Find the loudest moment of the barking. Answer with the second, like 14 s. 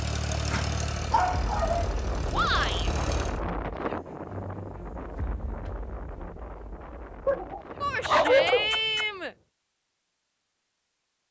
8 s.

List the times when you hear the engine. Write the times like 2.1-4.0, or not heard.
0.0-3.4.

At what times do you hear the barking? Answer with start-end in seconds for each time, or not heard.
0.3-1.9, 7.2-9.1.